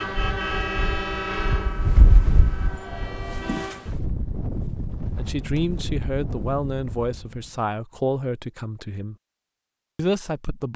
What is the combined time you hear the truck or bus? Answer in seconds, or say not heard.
4 s.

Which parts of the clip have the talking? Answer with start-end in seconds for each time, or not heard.
5.2-9.2, 9.9-10.7.